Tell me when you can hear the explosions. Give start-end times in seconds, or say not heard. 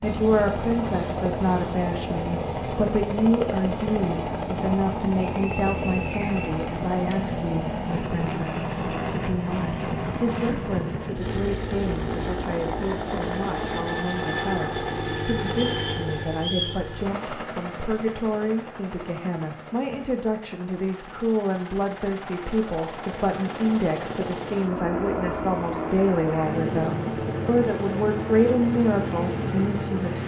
not heard.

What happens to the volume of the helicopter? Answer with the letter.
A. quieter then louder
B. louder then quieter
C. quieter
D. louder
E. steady
A.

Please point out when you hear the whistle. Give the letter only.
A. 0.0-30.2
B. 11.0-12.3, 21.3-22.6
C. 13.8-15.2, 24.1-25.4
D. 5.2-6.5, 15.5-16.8
D.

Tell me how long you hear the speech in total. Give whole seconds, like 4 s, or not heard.
30 s.